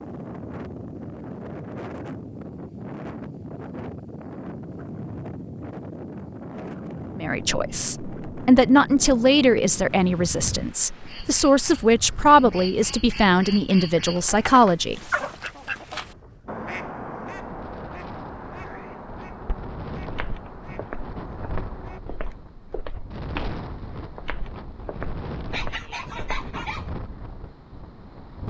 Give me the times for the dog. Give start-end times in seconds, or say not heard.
25.5-26.9.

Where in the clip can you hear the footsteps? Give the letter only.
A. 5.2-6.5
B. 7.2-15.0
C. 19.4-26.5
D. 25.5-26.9
C.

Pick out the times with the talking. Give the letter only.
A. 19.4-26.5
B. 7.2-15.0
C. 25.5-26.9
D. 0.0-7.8
B.